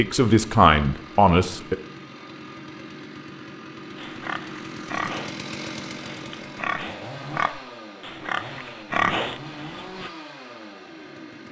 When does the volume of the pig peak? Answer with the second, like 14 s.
9 s.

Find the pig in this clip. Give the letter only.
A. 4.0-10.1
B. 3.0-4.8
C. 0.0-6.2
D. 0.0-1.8
A.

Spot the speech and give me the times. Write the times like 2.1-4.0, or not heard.
0.0-1.8.